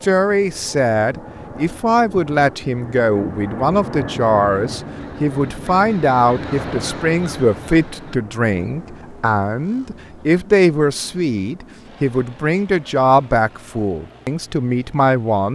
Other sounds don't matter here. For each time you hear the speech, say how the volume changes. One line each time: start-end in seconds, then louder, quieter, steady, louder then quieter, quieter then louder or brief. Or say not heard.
0.0-15.5 steady.